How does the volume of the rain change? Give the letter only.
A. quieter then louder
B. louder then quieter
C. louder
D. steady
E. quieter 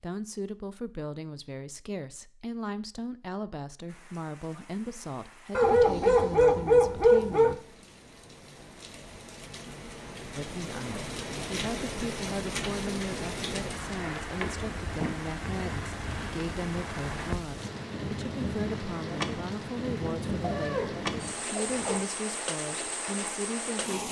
C.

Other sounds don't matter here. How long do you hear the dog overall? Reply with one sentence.
The dog can be heard for 4 seconds in total.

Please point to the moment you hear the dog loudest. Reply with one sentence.
The loudest moment of the dog is at 7 seconds.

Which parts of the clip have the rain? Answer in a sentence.
The rain can be heard from 3.9 to 24.0 s.